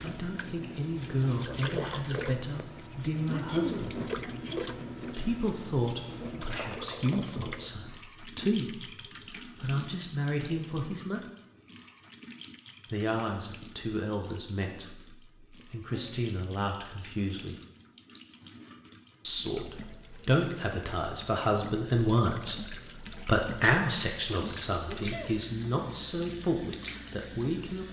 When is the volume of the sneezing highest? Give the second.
4 s.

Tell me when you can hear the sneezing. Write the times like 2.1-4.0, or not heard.
3.3-4.6, 15.6-16.4, 24.9-25.4.